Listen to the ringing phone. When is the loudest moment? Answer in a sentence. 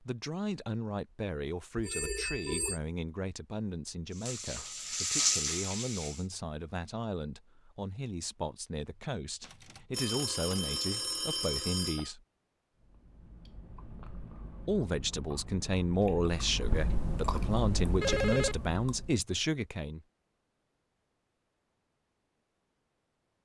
The volume of the ringing phone peaks at 18 seconds.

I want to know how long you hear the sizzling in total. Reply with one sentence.
The sizzling can be heard for 2 seconds in total.